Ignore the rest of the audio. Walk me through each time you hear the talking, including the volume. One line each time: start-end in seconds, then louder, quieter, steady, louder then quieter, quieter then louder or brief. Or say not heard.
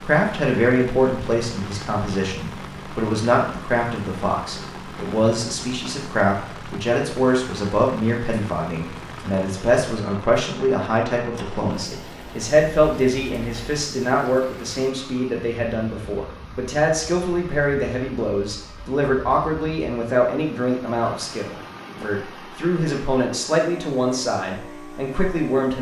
0.0-25.7 steady.